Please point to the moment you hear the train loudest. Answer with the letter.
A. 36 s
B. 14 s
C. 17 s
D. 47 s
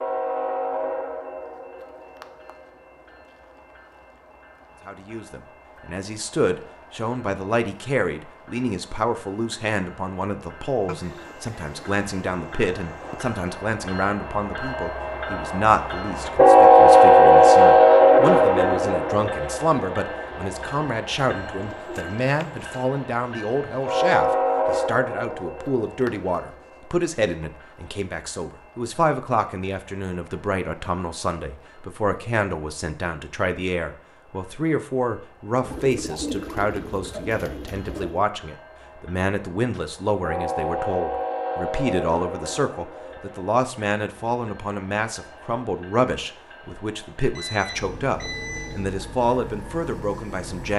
C.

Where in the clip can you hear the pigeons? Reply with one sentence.
The pigeons can be heard from 10.8 to 13.4 s, from 21.5 to 22.9 s and from 35.6 to 38.2 s.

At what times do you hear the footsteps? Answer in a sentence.
The footsteps can't be heard in this clip.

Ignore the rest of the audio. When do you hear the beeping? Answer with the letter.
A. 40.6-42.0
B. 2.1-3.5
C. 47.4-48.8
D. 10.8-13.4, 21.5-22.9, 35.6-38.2
C.